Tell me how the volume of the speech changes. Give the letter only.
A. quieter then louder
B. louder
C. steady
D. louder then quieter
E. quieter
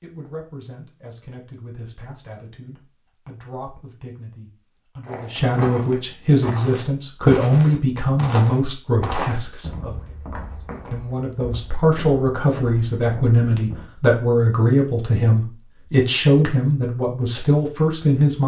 B.